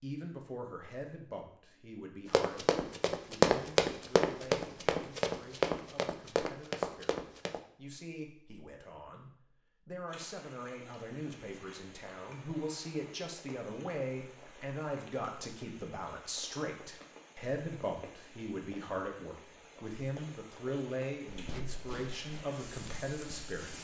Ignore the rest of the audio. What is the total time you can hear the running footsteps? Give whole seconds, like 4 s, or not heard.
8 s.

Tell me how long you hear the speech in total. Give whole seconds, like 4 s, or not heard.
24 s.